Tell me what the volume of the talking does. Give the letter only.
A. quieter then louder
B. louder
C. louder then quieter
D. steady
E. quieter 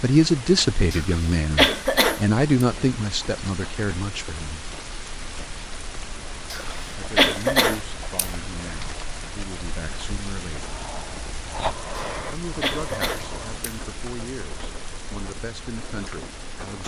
E.